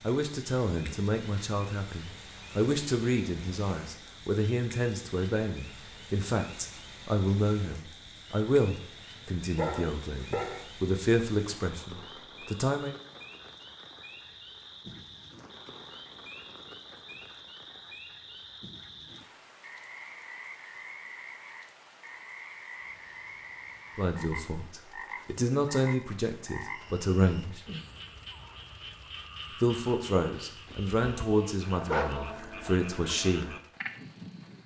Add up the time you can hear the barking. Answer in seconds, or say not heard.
3 s.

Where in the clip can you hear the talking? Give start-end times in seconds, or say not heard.
0.0-12.9, 23.9-27.6, 29.5-33.5.